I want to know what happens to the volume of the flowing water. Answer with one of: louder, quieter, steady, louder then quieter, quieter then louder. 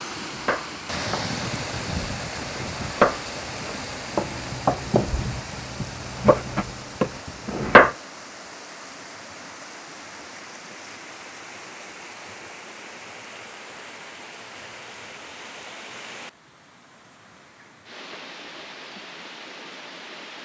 quieter.